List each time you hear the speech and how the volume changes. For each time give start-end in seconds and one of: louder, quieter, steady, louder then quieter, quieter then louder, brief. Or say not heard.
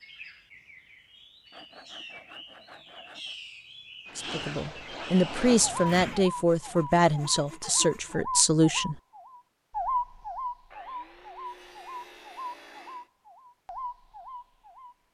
4.2-9.0 steady.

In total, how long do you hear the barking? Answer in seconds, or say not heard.
not heard.